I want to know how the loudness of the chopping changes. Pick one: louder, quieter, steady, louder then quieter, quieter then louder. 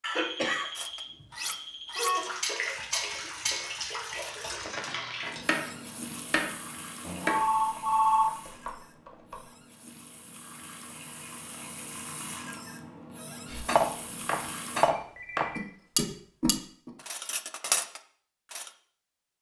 louder.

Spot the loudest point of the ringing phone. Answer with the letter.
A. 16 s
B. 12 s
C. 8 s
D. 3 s
C.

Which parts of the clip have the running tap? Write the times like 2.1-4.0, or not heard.
2.1-14.9.